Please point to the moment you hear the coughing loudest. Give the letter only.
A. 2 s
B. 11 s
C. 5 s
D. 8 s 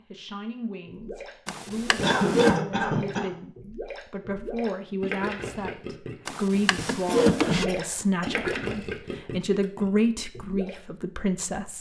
A.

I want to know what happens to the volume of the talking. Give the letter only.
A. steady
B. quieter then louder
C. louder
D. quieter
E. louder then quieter
C.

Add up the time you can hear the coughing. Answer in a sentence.
You can hear the coughing for 3 seconds altogether.